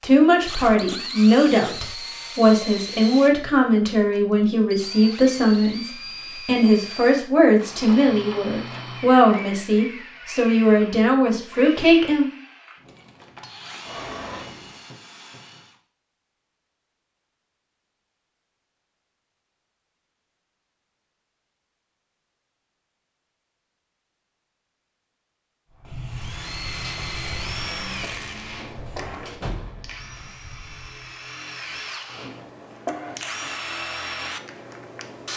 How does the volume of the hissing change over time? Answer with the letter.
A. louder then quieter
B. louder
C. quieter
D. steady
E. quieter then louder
C.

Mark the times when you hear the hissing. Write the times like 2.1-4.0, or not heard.
25.7-31.0.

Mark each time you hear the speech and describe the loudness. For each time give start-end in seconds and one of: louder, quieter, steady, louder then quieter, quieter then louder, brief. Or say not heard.
0.0-12.3 steady.